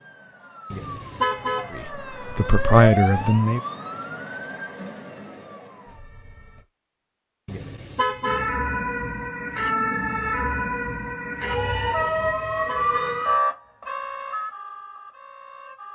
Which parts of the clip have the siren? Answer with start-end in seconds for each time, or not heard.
0.0-6.7, 8.2-15.9.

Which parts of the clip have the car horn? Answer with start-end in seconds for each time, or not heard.
0.7-1.7, 7.5-8.5, 12.2-13.2.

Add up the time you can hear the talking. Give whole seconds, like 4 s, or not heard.
2 s.